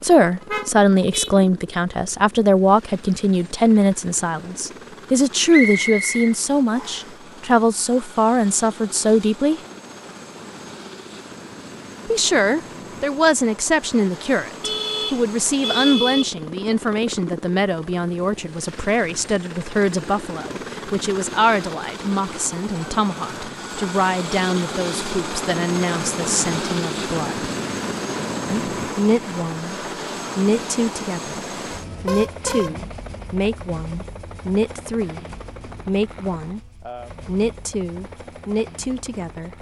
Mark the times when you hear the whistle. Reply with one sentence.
The whistle can be heard from 5.5 to 7.1 s.